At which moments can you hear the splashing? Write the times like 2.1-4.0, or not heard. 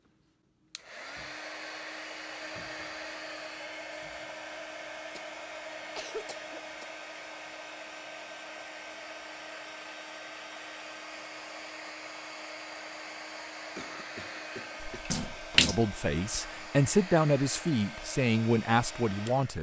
14.8-16.4.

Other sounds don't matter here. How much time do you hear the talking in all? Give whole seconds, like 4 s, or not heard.
4 s.